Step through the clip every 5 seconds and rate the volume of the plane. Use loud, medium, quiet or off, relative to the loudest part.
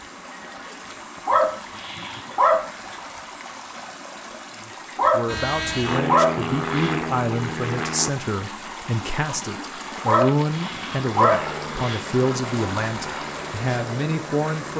off, loud, medium.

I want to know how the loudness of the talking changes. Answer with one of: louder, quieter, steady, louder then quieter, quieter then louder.
steady.